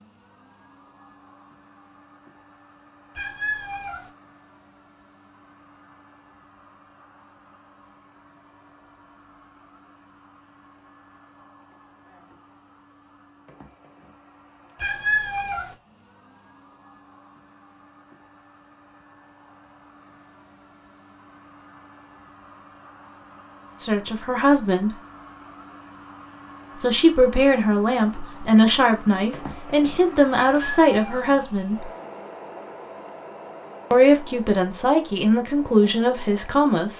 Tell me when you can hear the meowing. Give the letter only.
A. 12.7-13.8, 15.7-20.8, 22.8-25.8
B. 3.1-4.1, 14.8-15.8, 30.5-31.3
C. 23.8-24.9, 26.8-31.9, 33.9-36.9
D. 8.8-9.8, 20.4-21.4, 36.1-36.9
B.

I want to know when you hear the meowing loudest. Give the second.
15 s.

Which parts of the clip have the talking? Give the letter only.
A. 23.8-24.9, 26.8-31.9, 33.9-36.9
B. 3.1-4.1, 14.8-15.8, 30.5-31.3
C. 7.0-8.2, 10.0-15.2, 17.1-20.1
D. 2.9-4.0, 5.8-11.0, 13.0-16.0
A.